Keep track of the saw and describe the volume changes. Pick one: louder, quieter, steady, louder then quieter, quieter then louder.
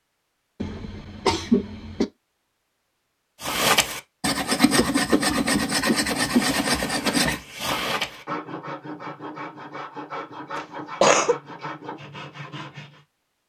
quieter.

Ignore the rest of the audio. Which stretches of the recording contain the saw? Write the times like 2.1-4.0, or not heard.
3.4-13.0.